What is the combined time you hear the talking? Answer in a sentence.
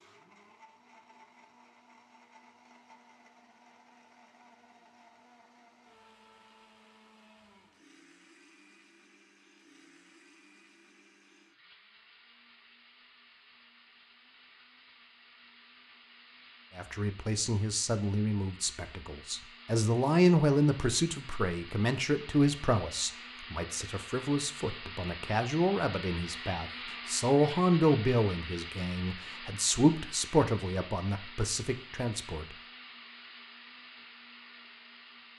The talking can be heard for 16 seconds in total.